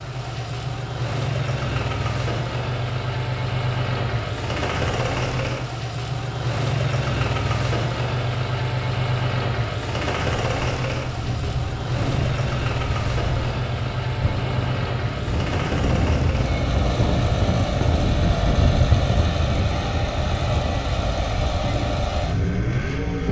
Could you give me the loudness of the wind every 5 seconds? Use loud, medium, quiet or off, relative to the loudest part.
off, off, medium, loud, medium.